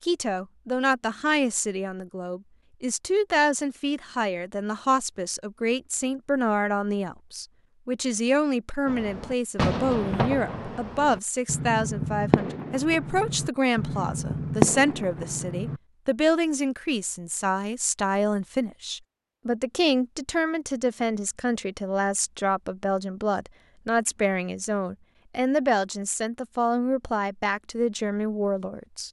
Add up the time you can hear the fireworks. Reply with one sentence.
The fireworks can be heard for 7 seconds in total.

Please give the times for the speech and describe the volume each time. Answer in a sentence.
The speech can be heard from 0.0 to 29.0 s, at a steady volume.